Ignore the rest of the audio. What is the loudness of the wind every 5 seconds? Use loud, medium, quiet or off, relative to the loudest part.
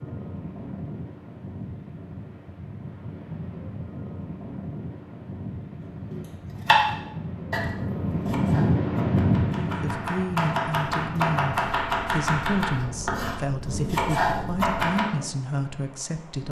medium, loud, medium, quiet.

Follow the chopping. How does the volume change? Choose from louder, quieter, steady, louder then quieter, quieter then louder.
quieter then louder.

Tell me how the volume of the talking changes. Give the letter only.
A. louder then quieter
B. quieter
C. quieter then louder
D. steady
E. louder
D.